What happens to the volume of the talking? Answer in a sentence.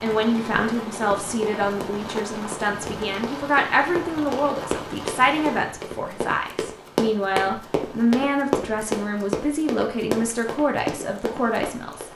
The loudness of the talking stays about the same.